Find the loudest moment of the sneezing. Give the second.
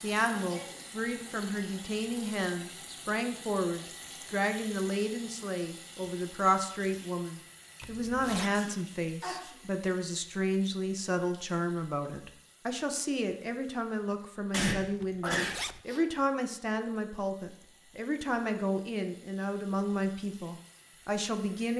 15 s.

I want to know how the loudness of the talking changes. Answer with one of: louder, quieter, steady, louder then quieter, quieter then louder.
steady.